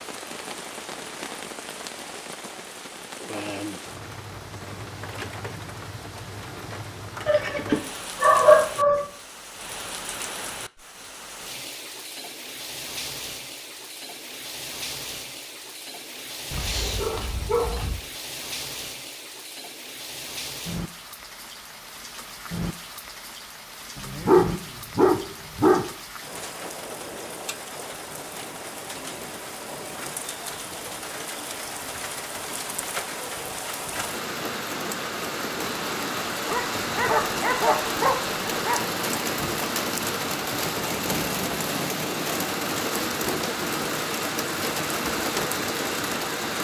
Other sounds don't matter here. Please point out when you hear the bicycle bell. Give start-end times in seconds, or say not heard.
not heard.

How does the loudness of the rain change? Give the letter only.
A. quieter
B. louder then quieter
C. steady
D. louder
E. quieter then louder
D.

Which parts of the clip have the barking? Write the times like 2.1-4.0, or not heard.
7.2-9.1, 16.5-18.0, 23.9-25.9, 36.5-38.8.